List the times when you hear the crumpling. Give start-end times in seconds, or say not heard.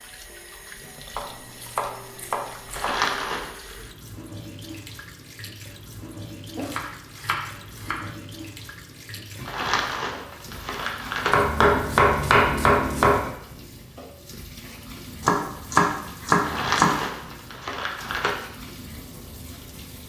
2.7-3.5, 9.4-11.3, 16.4-18.3.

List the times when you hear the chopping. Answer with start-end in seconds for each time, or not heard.
1.1-3.0, 6.5-8.1, 11.3-13.2, 15.2-16.9.